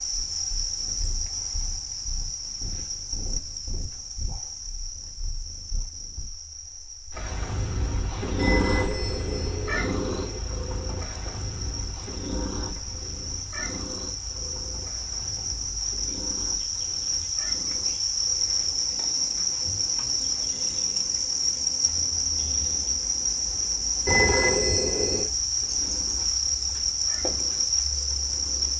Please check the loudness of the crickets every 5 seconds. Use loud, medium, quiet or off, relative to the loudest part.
medium, quiet, medium, loud, loud, loud.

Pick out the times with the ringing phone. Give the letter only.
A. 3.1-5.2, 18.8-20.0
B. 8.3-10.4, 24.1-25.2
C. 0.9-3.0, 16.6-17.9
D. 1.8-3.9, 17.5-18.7
B.